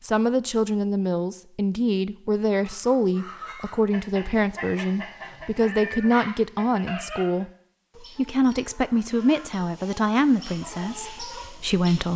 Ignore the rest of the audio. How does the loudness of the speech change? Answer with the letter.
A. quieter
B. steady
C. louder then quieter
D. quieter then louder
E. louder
B.